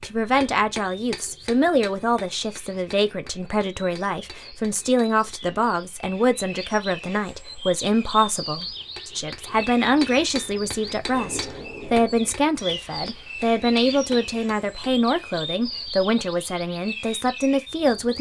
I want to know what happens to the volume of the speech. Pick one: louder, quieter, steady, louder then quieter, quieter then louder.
steady.